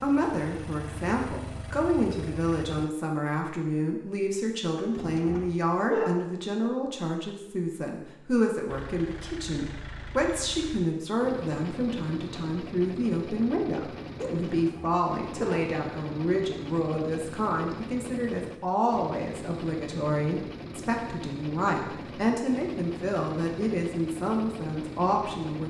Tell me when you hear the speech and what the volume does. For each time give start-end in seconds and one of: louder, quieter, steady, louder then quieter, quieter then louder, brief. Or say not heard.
0.0-25.6 steady.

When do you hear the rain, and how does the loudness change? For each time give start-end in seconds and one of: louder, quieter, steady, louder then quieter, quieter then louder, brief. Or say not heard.
not heard.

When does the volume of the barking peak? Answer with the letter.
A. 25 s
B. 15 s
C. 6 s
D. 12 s
C.